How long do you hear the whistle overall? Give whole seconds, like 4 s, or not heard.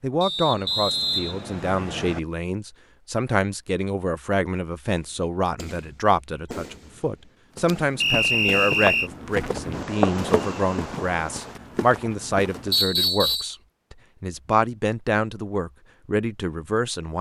4 s.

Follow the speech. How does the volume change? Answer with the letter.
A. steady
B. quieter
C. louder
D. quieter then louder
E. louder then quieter
A.